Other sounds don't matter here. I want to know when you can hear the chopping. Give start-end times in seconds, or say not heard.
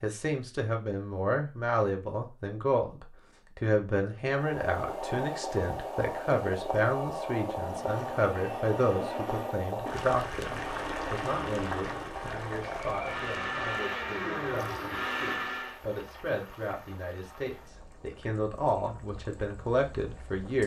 not heard.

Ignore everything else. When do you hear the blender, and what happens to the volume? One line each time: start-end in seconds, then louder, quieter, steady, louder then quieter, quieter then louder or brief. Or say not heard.
7.7-15.8 louder.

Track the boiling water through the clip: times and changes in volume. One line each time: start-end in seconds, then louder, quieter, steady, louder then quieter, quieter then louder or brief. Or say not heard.
4.2-20.6 quieter.